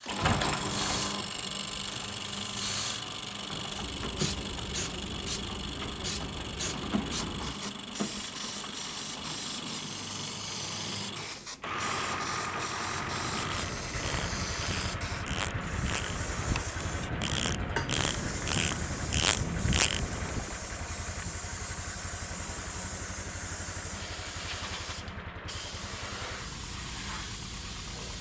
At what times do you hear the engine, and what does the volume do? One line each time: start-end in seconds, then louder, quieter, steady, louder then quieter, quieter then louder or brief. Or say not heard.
0.0-28.1 quieter.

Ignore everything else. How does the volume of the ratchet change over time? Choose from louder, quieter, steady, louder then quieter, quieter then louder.
louder.